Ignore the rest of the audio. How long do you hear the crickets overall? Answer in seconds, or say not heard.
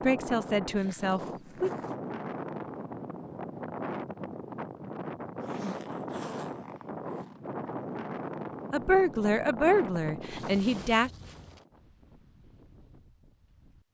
not heard.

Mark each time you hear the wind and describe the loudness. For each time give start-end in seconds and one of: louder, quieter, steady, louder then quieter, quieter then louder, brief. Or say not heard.
0.0-13.8 quieter.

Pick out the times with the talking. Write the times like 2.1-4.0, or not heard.
0.0-1.7, 8.7-11.1.